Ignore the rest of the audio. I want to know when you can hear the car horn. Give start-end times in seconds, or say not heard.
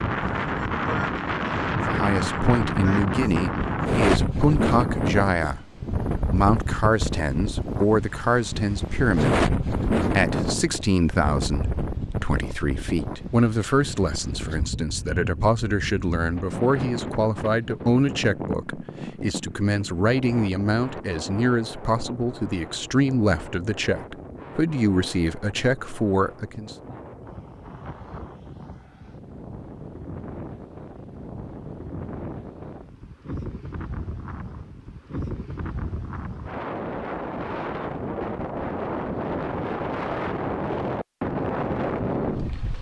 not heard.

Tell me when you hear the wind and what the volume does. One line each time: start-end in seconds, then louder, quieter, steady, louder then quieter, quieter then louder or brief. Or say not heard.
0.0-42.7 quieter then louder.